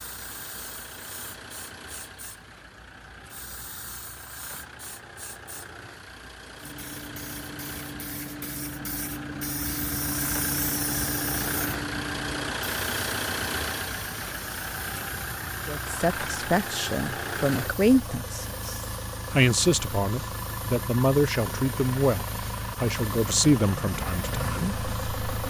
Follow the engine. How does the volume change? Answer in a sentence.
The loudness of the engine goes up.